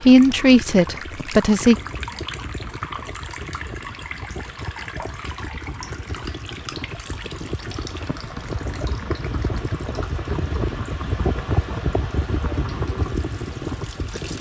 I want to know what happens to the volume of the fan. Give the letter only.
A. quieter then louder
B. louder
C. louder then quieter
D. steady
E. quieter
B.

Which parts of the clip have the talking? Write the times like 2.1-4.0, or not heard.
0.0-1.8.